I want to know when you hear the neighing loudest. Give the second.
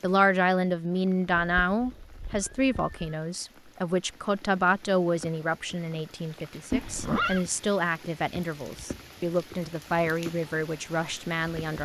7 s.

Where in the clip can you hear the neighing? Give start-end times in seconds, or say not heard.
1.3-3.1, 6.7-7.5.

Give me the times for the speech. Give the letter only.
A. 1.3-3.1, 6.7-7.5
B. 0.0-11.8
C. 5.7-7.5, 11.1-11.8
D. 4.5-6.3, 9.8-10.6
B.